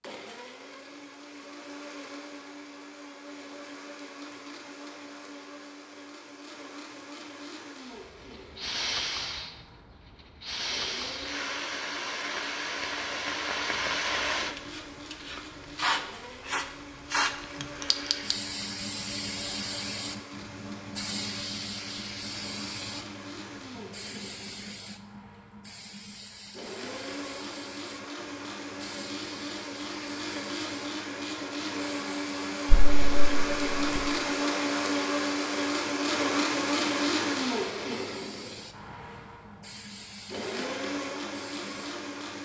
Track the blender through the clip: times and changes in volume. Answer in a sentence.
You can hear the blender from 0.0 to 42.3 s, getting louder.